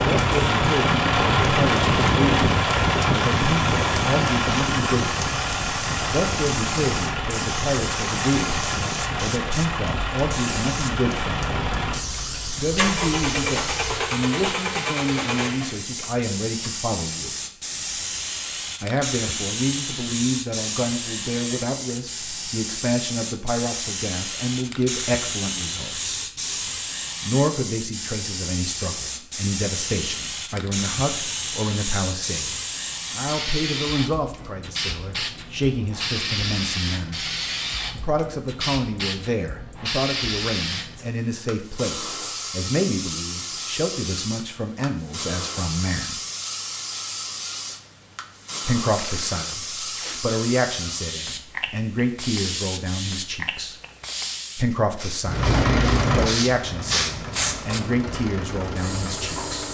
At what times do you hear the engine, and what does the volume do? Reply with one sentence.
You can hear the engine from 0.0 to 16.7 s, getting quieter; and from 55.2 to 59.6 s, getting quieter.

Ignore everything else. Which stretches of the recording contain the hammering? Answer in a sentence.
You can't hear the hammering here.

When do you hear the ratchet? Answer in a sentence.
The ratchet can't be heard in this clip.